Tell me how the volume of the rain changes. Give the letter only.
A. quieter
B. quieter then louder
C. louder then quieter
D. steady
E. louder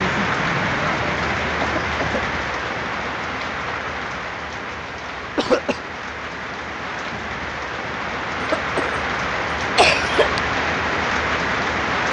B.